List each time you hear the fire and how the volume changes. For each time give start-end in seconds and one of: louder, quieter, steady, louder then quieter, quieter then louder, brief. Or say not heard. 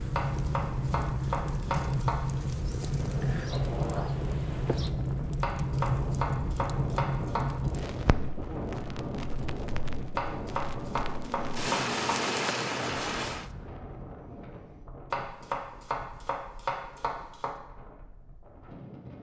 0.0-13.5 quieter then louder.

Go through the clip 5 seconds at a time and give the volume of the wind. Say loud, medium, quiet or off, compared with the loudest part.
loud, loud, loud, quiet.